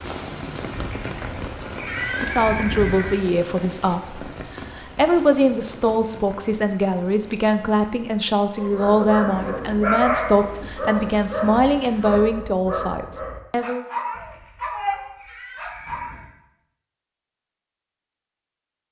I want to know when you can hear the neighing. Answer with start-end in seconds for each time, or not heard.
0.7-3.2, 14.1-16.3.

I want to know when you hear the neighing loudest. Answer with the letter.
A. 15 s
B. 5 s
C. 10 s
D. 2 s
D.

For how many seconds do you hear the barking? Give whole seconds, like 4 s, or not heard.
8 s.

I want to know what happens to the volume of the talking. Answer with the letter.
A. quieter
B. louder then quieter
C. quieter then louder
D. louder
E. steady
E.